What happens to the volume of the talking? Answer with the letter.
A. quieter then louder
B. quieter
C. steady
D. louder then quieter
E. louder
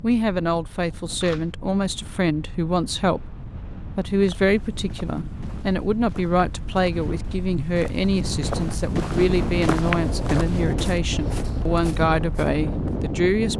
C.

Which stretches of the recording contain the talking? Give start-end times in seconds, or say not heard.
0.0-3.4, 4.0-13.5.